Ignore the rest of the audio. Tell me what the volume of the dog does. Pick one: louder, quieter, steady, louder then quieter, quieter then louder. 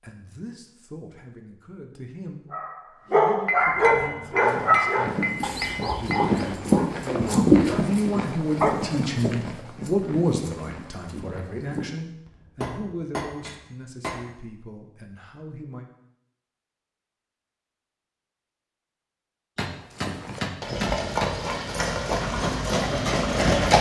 quieter then louder.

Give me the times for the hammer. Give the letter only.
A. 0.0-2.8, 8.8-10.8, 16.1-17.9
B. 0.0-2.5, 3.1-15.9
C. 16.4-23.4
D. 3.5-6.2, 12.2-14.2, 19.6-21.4
D.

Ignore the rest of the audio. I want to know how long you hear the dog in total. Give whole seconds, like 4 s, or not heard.
7 s.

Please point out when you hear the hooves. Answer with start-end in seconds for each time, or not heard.
3.7-11.8, 19.8-23.7.